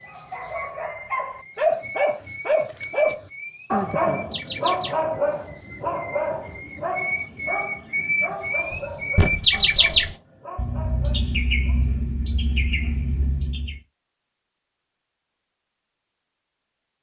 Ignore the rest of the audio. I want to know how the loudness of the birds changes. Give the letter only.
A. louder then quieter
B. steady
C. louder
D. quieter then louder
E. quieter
A.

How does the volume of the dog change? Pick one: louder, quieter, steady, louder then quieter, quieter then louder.
quieter.